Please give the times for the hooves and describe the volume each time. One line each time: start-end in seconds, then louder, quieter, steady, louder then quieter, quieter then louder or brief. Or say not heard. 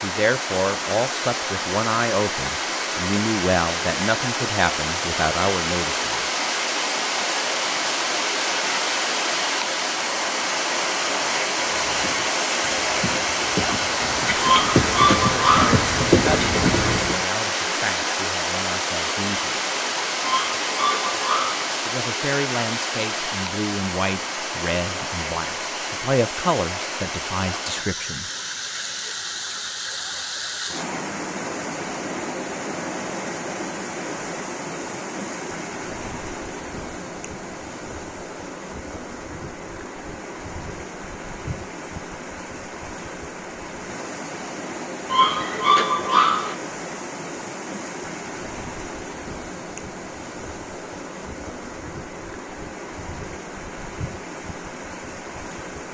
11.7-17.2 louder.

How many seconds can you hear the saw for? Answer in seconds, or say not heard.
not heard.